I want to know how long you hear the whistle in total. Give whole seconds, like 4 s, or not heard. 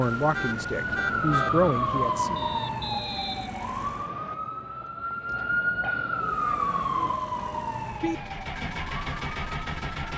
2 s.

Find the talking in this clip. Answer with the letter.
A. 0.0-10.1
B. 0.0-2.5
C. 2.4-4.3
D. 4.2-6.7
B.